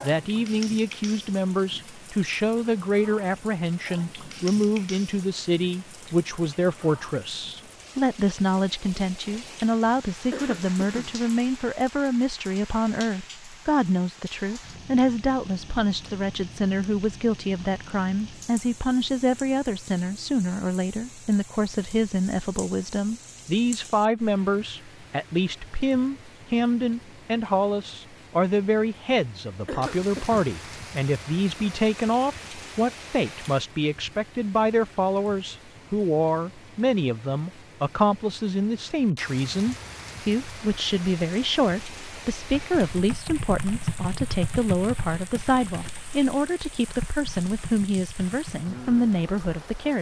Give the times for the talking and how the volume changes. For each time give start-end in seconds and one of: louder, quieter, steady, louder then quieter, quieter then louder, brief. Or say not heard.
0.0-49.9 steady.